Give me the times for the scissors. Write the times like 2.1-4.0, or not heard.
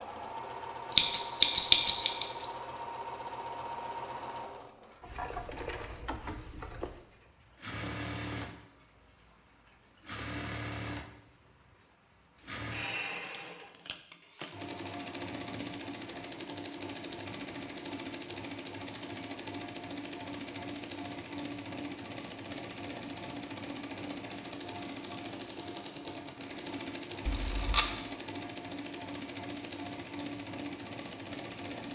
0.9-2.5, 27.2-27.9.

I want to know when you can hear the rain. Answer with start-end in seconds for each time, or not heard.
not heard.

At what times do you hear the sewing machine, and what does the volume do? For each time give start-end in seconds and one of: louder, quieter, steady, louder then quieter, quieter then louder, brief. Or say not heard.
0.0-31.9 steady.